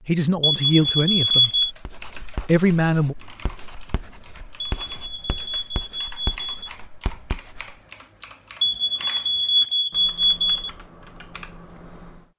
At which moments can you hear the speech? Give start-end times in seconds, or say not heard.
0.1-1.7, 2.4-3.1.